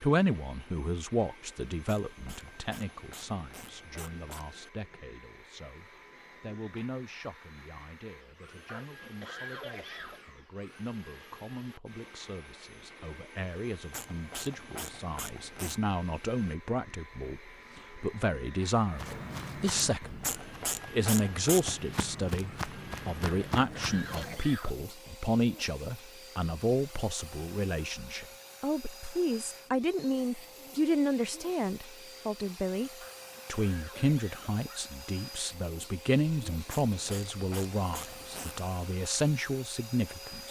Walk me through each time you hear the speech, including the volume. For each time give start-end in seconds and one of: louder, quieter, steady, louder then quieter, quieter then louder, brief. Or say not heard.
0.0-40.4 louder.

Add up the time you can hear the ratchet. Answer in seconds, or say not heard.
8 s.